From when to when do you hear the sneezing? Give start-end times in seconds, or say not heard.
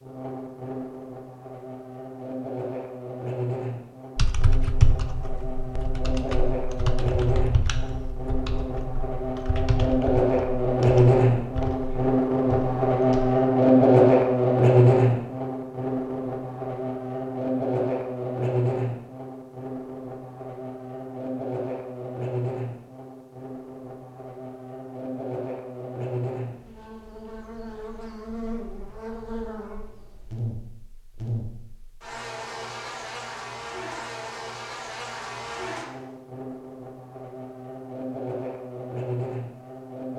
not heard.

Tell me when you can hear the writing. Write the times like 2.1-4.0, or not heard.
not heard.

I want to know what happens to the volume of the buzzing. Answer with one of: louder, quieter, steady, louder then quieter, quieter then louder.
louder then quieter.